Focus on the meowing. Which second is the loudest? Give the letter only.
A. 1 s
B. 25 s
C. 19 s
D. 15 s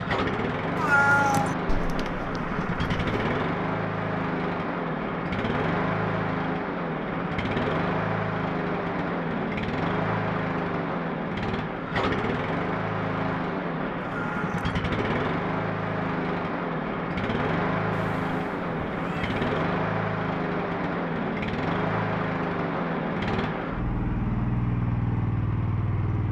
A.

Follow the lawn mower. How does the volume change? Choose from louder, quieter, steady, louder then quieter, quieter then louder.
steady.